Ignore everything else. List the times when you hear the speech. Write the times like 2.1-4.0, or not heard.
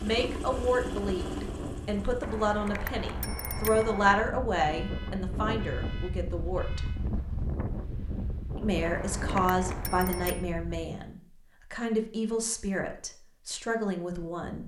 0.0-6.8, 8.6-14.6.